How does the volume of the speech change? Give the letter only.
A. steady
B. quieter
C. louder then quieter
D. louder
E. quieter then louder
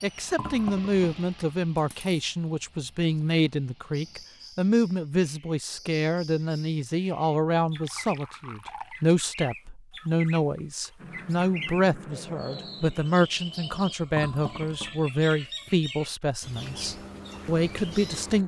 A.